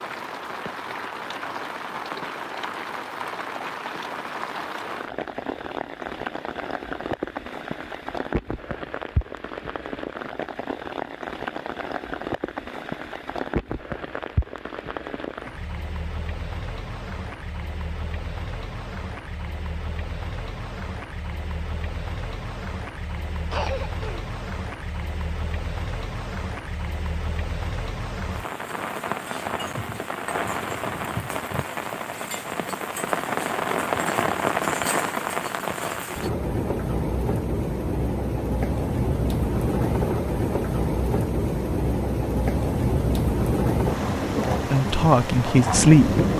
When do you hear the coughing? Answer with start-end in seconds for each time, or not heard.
23.5-24.2.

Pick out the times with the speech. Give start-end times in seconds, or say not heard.
44.4-46.3.